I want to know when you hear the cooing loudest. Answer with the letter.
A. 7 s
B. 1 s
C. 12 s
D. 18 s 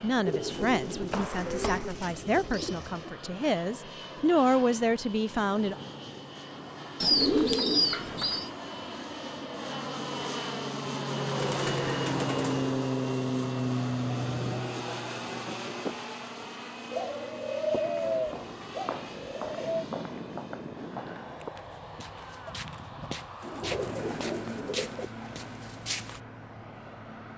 A.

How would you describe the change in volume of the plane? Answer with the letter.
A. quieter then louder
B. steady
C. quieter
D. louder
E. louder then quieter
E.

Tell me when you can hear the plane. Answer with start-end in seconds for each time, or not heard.
0.0-27.3.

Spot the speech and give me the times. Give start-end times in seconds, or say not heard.
0.0-5.8.